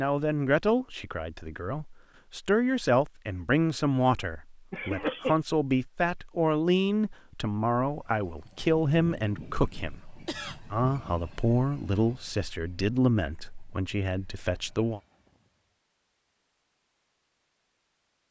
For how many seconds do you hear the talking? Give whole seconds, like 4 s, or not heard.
15 s.